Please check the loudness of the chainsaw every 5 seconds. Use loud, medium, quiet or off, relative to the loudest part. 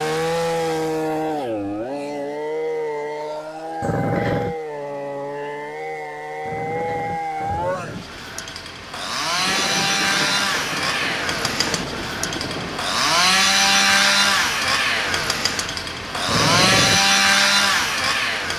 medium, medium, loud, loud.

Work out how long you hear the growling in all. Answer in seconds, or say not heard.
3 s.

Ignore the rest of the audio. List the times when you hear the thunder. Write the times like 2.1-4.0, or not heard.
9.3-12.8.